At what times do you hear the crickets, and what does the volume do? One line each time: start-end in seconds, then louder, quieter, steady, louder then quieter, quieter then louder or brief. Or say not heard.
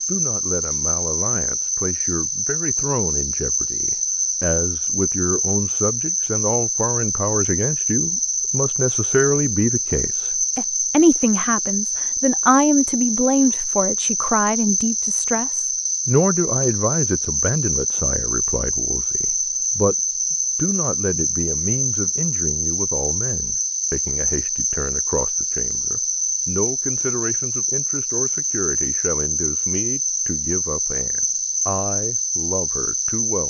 0.0-33.4 steady.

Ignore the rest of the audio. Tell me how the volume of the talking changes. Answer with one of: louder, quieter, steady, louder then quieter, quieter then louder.
louder then quieter.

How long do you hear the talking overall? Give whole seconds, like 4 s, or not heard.
33 s.